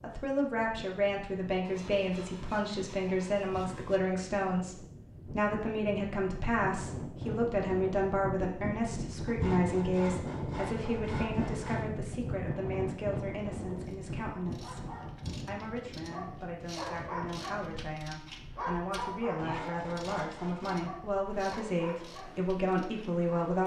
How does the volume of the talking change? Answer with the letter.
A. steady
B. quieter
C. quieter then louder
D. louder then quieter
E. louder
C.